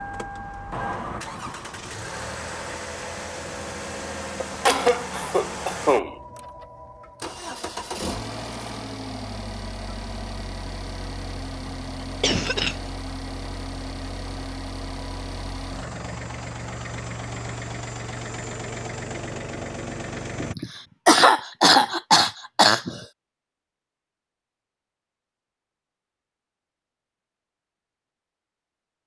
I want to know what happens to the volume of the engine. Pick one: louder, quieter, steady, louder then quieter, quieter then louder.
steady.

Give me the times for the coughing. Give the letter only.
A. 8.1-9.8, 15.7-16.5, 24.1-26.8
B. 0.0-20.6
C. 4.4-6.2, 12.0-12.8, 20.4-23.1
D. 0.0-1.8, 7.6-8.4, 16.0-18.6
C.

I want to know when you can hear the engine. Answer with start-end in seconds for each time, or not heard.
0.0-20.6.